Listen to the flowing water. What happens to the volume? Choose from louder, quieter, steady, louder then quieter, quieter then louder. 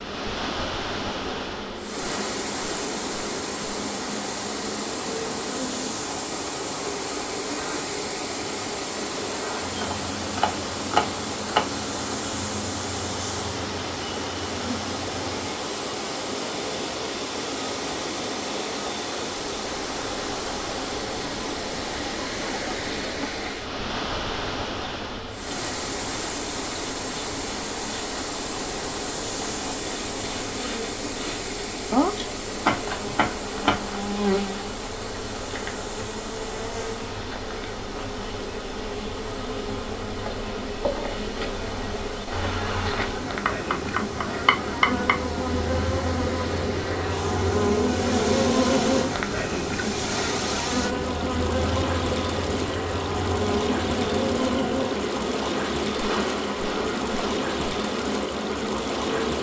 quieter then louder.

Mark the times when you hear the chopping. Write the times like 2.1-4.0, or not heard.
9.8-11.7, 31.9-33.9, 43.5-45.2.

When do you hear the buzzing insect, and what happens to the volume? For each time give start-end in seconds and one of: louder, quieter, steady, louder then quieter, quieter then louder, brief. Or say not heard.
0.0-59.3 louder.